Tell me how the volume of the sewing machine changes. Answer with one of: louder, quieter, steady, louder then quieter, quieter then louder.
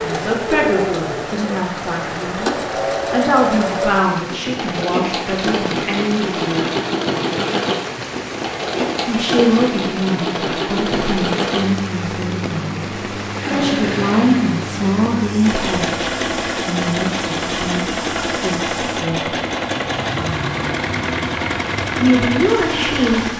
steady.